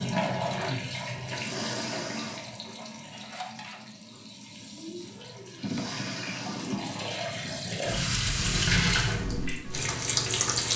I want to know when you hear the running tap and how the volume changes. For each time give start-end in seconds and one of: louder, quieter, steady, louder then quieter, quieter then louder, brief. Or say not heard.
0.0-10.7 quieter then louder.